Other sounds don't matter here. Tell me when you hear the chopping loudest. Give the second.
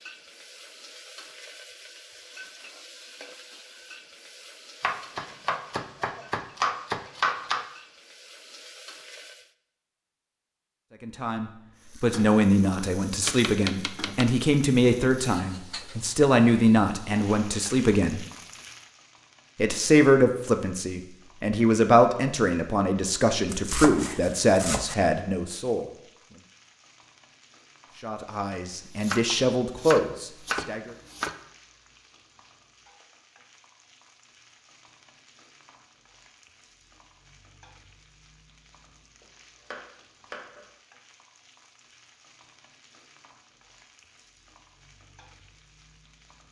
7 s.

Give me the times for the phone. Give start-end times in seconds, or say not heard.
not heard.